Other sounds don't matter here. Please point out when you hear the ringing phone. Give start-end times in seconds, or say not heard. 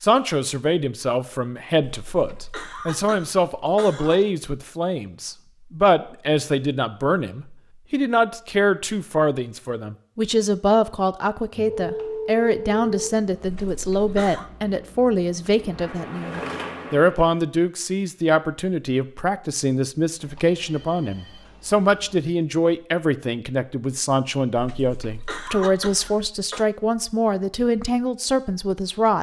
11.6-13.1, 20.2-22.2.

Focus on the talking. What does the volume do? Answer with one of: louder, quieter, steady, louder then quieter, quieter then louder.
steady.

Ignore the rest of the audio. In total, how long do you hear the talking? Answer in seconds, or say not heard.
29 s.